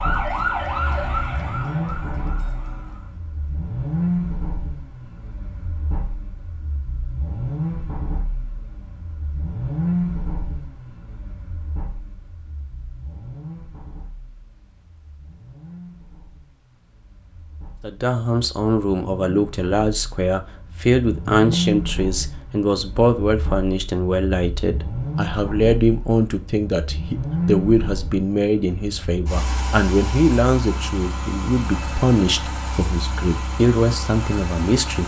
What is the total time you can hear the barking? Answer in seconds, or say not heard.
not heard.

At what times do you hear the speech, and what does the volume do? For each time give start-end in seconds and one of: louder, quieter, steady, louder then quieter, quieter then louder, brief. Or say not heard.
17.8-35.0 steady.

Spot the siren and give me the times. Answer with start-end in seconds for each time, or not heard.
0.0-3.2.